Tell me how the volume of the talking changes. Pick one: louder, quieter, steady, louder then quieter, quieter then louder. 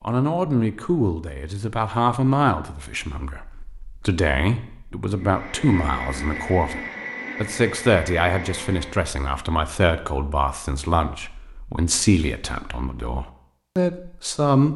steady.